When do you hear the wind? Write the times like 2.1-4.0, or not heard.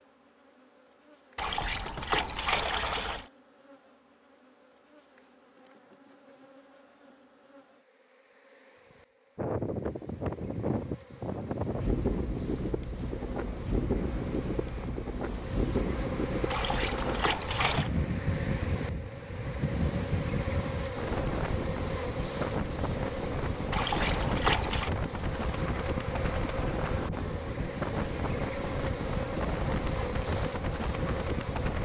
9.3-31.8.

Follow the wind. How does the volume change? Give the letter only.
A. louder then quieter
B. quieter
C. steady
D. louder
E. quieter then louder
C.